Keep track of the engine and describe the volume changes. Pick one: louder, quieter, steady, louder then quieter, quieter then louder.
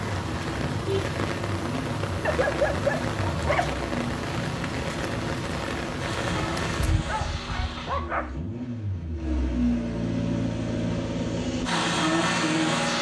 louder.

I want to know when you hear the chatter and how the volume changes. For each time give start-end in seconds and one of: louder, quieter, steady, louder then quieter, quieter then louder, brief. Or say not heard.
not heard.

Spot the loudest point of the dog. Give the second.
3 s.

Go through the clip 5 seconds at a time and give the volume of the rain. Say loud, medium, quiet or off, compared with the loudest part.
loud, loud, off.